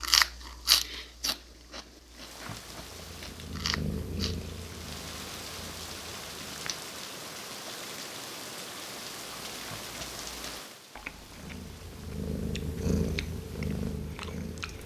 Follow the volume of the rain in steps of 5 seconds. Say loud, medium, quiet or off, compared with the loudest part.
medium, loud, medium.